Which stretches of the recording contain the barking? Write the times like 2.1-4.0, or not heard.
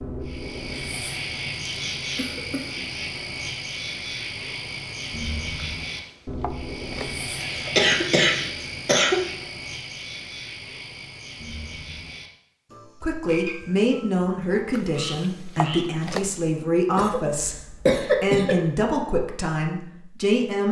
not heard.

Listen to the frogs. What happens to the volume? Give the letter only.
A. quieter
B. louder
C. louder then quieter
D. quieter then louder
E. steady
A.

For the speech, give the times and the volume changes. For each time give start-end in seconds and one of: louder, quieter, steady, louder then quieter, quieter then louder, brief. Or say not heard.
13.0-20.6 steady.